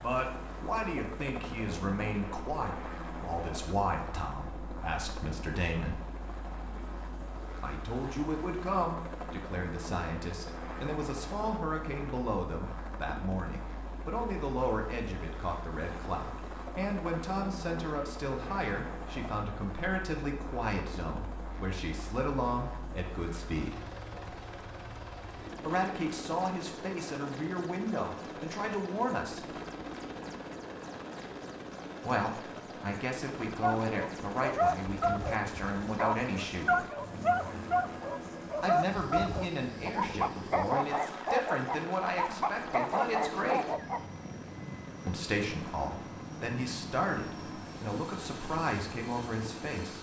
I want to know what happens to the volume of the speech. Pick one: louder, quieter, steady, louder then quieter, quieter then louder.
steady.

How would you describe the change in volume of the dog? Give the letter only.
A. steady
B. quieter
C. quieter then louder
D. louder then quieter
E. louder
A.